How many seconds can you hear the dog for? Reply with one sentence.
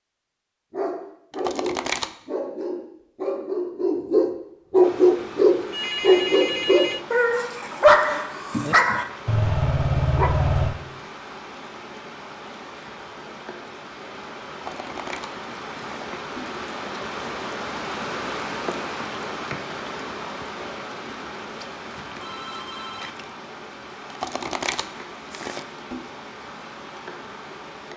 You can hear the dog for 10 seconds altogether.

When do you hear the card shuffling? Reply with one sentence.
The card shuffling can be heard from 1.3 to 2.1 s, from 14.5 to 16.6 s and from 24.1 to 26.1 s.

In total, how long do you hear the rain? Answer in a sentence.
The rain can be heard for 23 seconds in total.